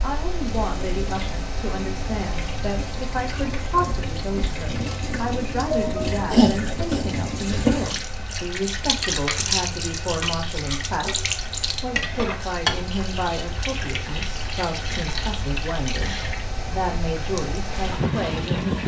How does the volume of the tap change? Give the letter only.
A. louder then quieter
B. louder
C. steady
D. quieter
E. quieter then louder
A.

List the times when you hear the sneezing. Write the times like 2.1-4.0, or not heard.
5.7-7.0.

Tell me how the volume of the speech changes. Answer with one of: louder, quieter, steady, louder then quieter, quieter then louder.
steady.